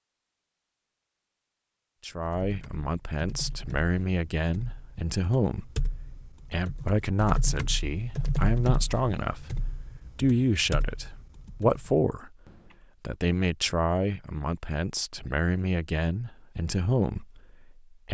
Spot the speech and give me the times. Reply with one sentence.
The speech can be heard from 2.0 to 5.8 s, from 6.5 to 12.3 s and from 13.0 to 18.0 s.